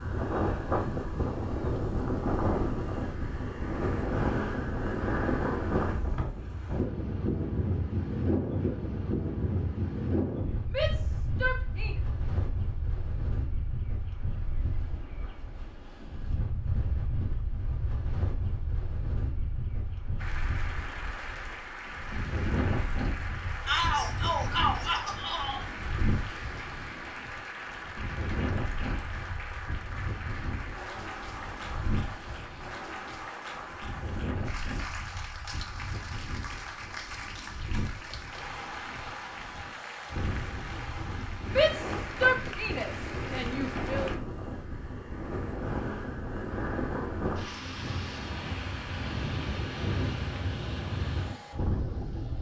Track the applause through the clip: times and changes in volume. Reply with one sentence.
The applause can be heard from 20.1 to 44.1 s, at a steady volume.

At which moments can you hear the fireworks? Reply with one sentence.
You can't hear the fireworks here.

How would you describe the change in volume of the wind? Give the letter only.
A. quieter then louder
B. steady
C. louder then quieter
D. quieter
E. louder
A.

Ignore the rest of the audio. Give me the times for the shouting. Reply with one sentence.
You can hear the shouting from 10.7 to 11.9 s, from 23.6 to 25.6 s and from 41.5 to 44.1 s.